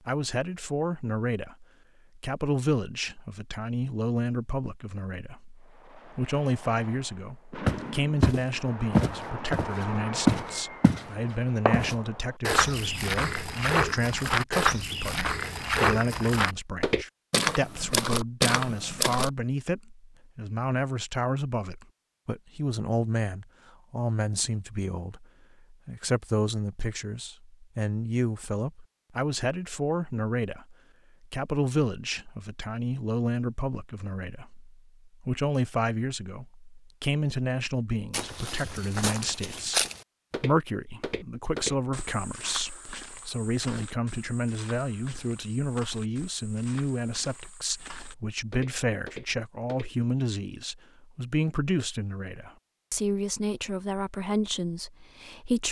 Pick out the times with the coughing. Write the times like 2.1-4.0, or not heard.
not heard.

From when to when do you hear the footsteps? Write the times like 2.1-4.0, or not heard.
7.7-19.3, 38.1-49.9.